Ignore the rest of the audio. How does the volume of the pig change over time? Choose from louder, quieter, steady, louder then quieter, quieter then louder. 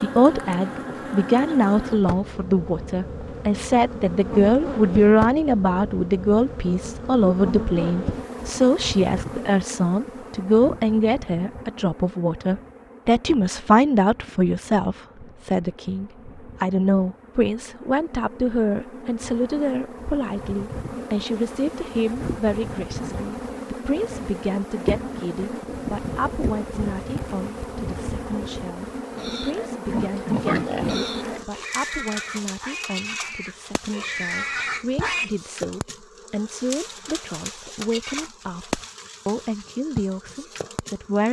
quieter then louder.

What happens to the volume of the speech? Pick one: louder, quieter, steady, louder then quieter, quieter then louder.
quieter.